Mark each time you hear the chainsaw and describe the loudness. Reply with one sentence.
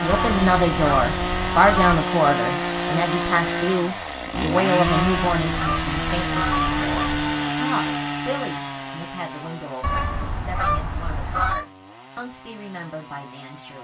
You can hear the chainsaw from 0.0 to 13.8 s, getting quieter.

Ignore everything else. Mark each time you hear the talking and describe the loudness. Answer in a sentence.
The talking can be heard from 0.0 to 13.8 s, getting quieter.